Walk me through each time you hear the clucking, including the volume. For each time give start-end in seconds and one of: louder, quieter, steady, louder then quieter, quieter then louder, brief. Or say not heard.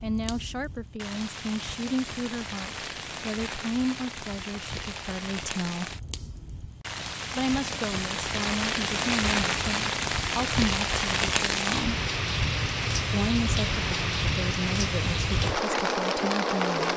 not heard.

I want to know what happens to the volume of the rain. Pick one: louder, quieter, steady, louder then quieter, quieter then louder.
louder.